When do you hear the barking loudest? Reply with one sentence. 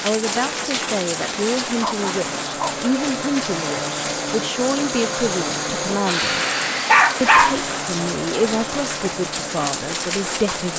The loudest moment of the barking is at 7 seconds.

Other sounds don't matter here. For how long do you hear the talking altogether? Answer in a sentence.
You can hear the talking for 10 seconds altogether.